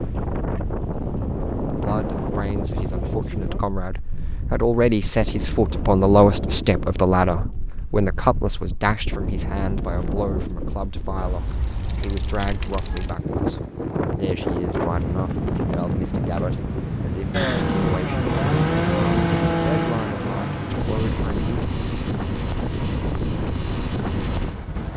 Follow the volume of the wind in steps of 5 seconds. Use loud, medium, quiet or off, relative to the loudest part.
loud, medium, loud, loud, loud.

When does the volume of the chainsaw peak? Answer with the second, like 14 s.
19 s.